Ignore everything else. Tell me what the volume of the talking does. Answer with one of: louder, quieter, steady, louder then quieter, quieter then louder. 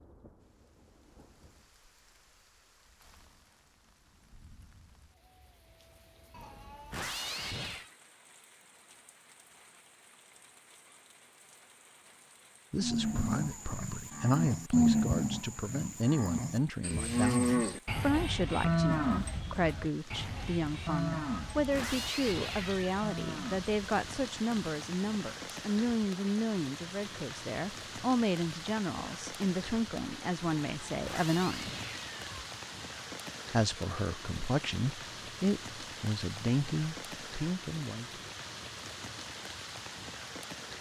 steady.